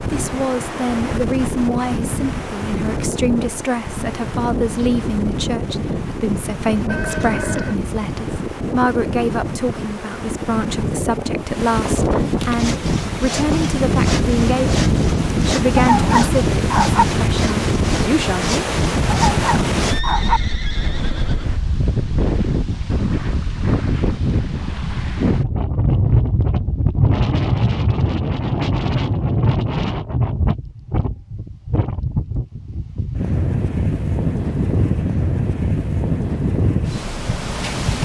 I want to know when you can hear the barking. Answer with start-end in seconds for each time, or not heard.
15.8-17.1, 19.1-20.4.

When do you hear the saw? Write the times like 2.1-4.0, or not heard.
12.5-20.1.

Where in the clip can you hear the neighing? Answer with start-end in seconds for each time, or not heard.
6.8-7.8, 19.9-21.6.